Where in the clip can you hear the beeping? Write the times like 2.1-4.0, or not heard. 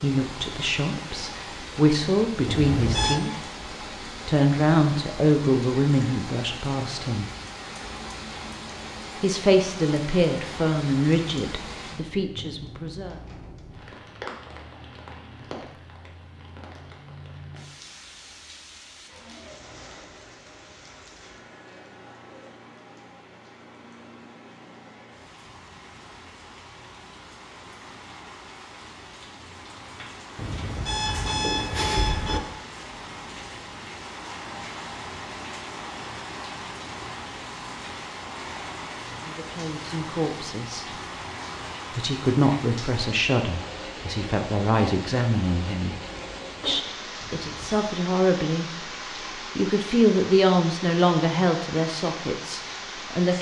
2.5-3.2, 30.4-32.4, 47.2-47.9.